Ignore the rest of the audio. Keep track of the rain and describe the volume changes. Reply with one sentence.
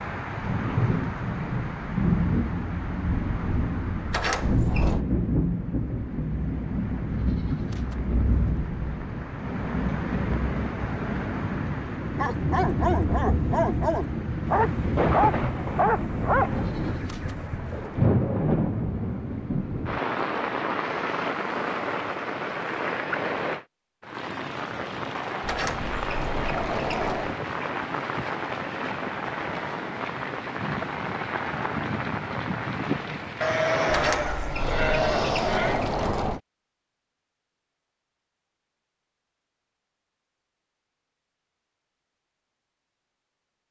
The loudness of the rain stays about the same.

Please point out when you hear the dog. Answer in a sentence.
The dog can be heard from 12.2 to 17.3 s.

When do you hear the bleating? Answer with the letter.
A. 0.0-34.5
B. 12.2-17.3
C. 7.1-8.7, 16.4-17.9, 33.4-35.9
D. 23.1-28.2
C.